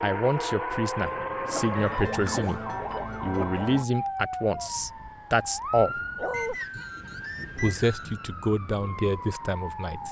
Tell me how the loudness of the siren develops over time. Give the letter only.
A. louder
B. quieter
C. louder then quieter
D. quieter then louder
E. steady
B.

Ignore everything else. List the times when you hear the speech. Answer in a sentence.
You can hear the speech from 0.0 to 2.6 s, from 3.2 to 6.0 s and from 7.5 to 10.0 s.